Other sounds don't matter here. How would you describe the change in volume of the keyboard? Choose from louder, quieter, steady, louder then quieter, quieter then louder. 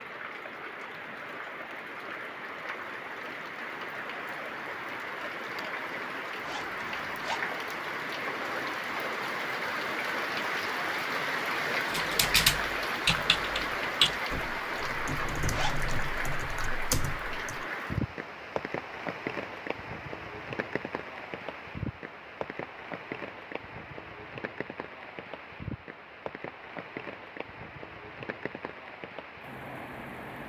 quieter then louder.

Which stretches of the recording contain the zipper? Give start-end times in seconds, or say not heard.
6.4-7.5, 15.5-15.9.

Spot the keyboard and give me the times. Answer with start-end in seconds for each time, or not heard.
11.9-17.6.